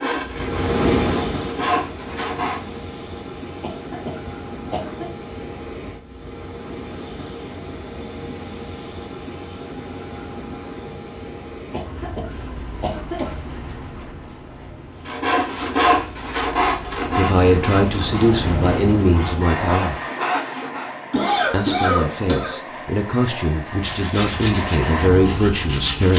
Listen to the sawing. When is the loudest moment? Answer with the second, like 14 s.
16 s.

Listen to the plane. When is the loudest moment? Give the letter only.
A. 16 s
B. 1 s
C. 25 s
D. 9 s
B.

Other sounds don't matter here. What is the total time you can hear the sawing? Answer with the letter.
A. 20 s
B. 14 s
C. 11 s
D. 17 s
C.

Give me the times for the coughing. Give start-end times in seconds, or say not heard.
3.6-5.0, 11.7-13.3, 21.1-22.6.